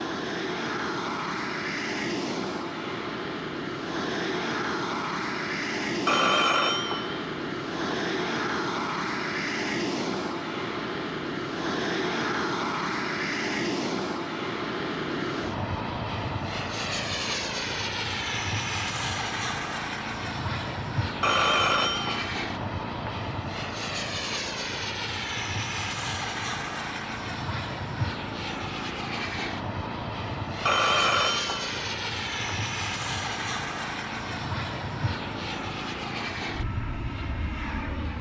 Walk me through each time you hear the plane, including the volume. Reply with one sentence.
The plane can be heard from 0.0 to 38.1 s, at a steady volume.